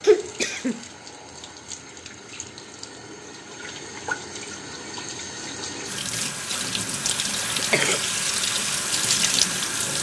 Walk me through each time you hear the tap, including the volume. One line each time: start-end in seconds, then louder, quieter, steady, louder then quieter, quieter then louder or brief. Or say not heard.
0.0-9.9 louder.